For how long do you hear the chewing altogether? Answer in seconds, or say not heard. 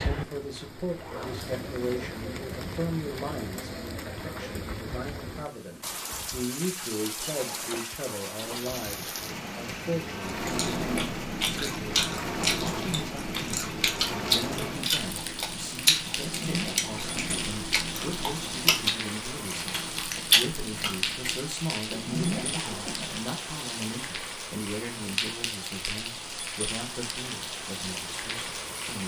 11 s.